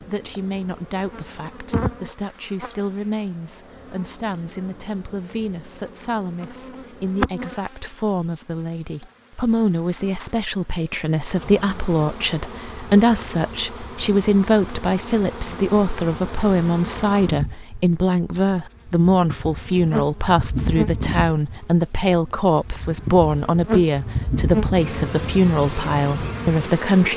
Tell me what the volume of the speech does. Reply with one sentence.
The loudness of the speech goes up.